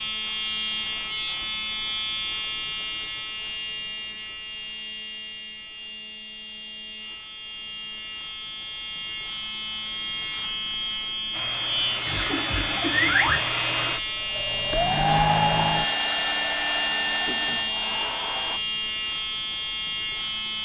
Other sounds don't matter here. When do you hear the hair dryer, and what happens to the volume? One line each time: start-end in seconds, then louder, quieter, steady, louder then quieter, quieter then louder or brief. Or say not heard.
11.3-18.6 louder then quieter.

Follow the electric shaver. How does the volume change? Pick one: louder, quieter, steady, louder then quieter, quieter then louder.
quieter then louder.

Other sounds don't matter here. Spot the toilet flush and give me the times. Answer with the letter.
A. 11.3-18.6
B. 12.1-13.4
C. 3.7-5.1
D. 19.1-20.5
B.